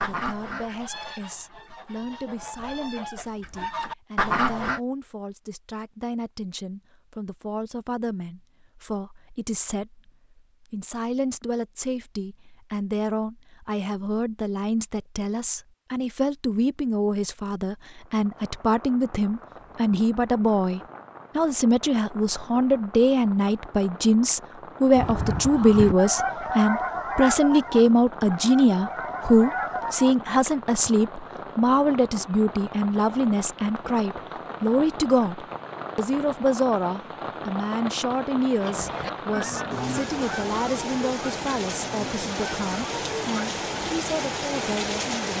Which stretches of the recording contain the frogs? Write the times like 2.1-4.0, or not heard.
not heard.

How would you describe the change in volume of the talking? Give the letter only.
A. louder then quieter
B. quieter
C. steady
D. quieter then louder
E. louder
A.